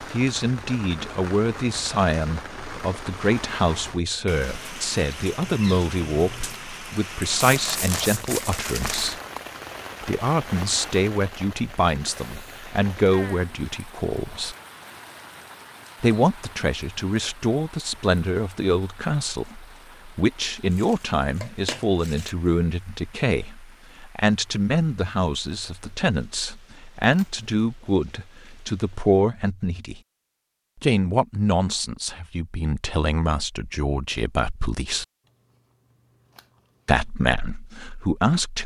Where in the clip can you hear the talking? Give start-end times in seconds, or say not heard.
0.0-9.2, 10.0-14.6, 16.0-30.0, 30.8-35.0, 36.9-38.6.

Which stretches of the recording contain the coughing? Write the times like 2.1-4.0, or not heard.
not heard.